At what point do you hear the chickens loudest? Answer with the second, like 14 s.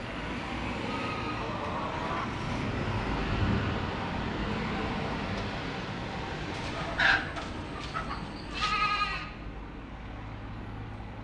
7 s.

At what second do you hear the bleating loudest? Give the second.
9 s.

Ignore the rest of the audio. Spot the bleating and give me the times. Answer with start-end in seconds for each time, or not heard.
0.8-1.6, 8.5-9.2.